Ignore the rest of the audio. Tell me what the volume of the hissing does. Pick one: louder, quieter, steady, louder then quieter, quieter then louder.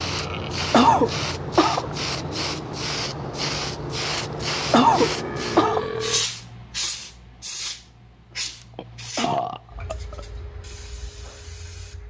quieter.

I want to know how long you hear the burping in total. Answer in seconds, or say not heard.
3 s.